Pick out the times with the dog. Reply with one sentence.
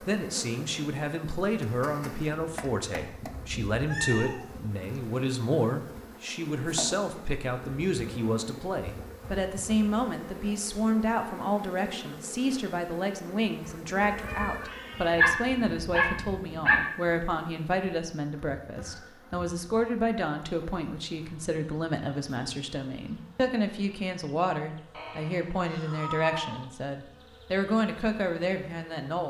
The dog can be heard from 15.0 to 16.8 s.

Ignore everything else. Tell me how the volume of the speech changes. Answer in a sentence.
The volume of the speech stays about the same.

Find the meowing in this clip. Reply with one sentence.
The meowing can be heard from 3.9 to 4.5 s, from 14.1 to 15.2 s and from 24.9 to 26.6 s.